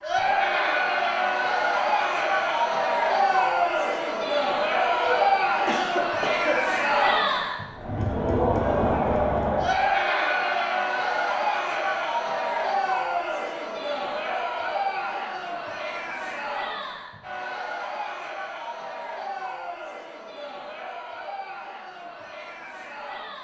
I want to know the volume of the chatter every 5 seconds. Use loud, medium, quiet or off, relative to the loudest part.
loud, loud, loud, medium, quiet.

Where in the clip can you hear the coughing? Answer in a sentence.
You can hear the coughing from 4.9 to 6.6 s.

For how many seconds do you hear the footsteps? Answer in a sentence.
You can't hear the footsteps here.